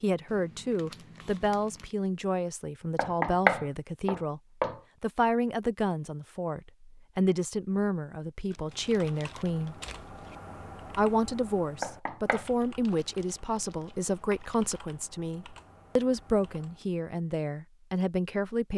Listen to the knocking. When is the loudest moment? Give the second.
3 s.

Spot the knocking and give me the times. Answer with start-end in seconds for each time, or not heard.
3.0-4.8, 11.8-12.4.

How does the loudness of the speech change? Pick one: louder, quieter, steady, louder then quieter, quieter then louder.
steady.